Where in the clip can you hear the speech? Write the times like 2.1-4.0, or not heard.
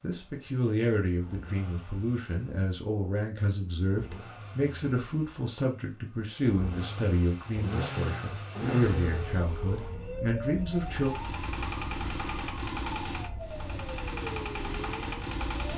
0.0-11.1.